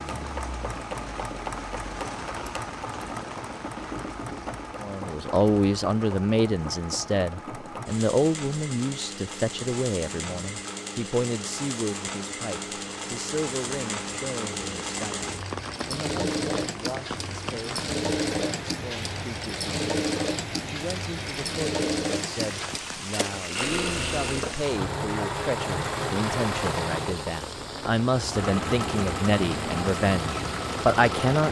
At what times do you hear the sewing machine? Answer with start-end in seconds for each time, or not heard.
0.0-31.4.